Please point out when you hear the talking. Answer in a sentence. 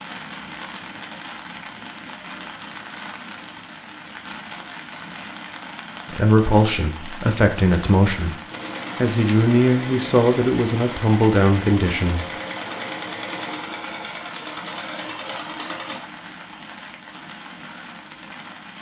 The talking can be heard from 6.0 to 8.3 s and from 9.0 to 12.2 s.